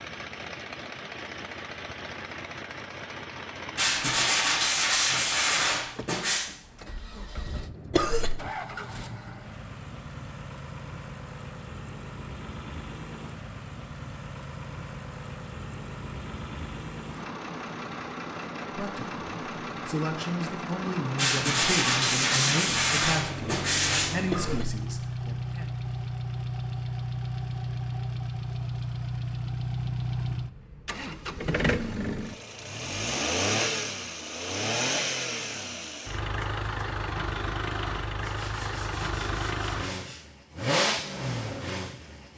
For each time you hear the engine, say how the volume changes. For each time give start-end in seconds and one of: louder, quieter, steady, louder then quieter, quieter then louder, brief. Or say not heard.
0.0-42.3 louder.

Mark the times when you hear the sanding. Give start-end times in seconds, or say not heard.
3.8-6.5, 21.1-24.1, 38.1-40.2.